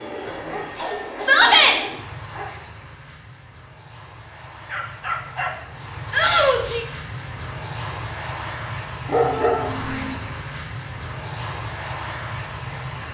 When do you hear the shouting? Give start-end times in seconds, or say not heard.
1.1-1.8, 6.1-6.8, 9.3-9.8.